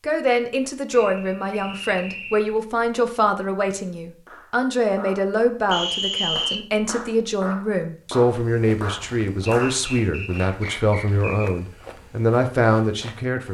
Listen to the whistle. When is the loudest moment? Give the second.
6 s.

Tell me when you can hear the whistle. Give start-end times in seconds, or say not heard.
0.9-2.5, 5.7-6.7, 9.4-11.5.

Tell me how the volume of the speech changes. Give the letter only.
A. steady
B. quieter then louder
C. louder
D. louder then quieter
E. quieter
A.